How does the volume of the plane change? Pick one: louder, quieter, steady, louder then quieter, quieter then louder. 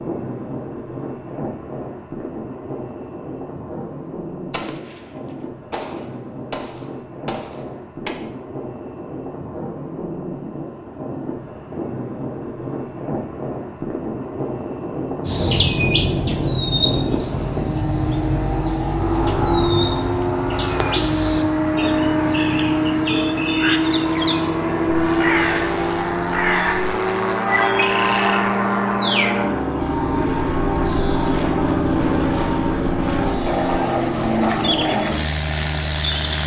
louder.